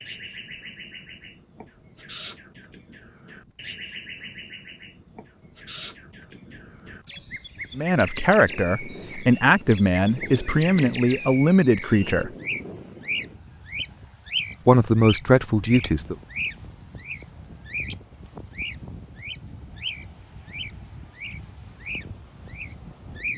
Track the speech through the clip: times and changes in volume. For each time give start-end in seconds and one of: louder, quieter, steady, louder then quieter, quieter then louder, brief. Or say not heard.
7.8-12.3 steady
14.7-16.1 brief.